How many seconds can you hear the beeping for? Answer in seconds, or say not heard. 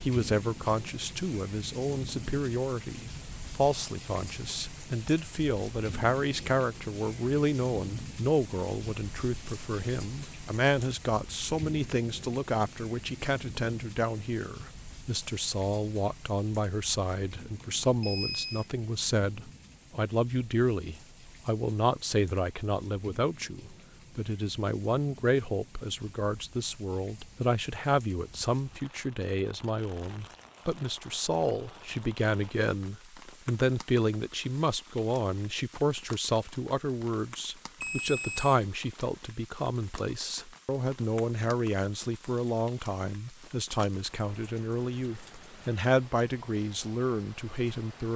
2 s.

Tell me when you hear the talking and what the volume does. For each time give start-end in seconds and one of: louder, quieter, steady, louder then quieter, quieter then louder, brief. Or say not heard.
0.0-48.1 steady.